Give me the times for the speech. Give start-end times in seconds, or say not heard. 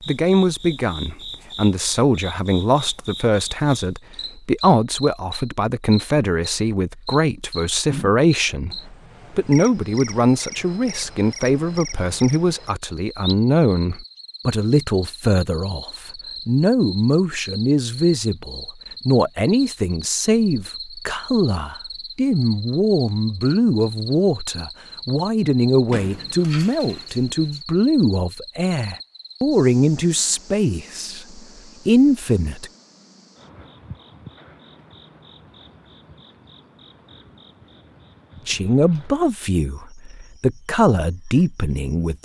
0.1-32.7, 38.5-42.2.